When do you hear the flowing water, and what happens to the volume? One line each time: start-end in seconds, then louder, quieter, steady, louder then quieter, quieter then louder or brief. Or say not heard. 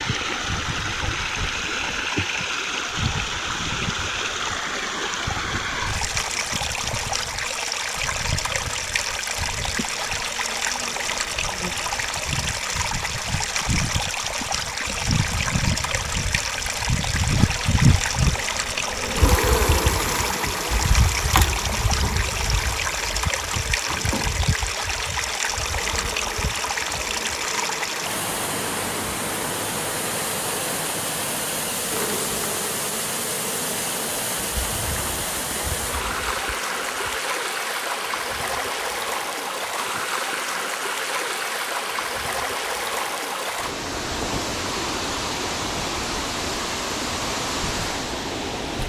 0.0-48.8 steady.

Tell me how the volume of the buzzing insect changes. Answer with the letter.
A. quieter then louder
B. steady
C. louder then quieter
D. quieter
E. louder
C.